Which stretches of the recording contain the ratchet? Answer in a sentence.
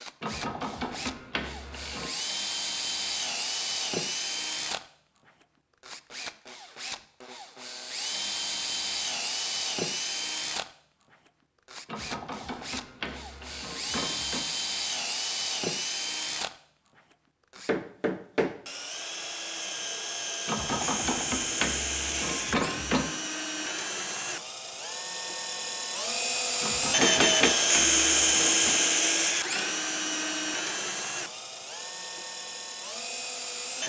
You can hear the ratchet from 0.2 to 2.1 s, from 11.8 to 14.4 s, from 20.4 to 23.1 s and from 26.6 to 28.8 s.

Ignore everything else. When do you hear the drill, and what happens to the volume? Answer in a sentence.
You can hear the drill from 0.0 to 33.8 s, getting louder.